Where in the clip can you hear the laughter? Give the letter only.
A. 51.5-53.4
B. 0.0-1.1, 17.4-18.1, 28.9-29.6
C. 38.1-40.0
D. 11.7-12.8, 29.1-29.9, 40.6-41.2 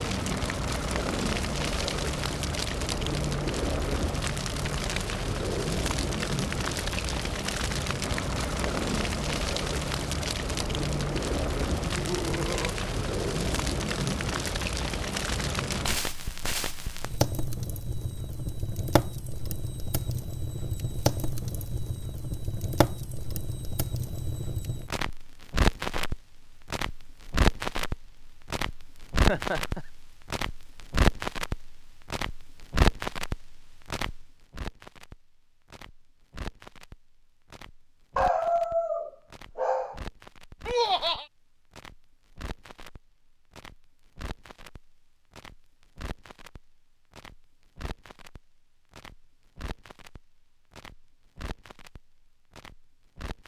D.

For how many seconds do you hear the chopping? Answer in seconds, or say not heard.
not heard.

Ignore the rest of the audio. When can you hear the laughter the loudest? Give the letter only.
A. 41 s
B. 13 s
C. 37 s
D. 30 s
A.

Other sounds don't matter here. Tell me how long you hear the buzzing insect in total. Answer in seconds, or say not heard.
not heard.